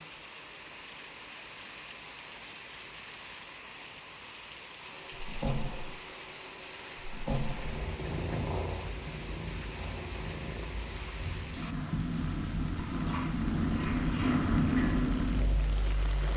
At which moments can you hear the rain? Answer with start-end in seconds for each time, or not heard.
0.0-16.3.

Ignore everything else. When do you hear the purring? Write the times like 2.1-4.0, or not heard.
4.8-16.3.